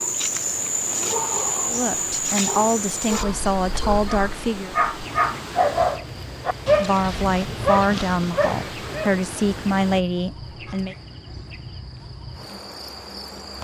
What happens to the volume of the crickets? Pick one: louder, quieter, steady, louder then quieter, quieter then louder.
quieter.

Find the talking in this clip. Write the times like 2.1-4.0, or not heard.
1.6-4.8, 6.7-10.9.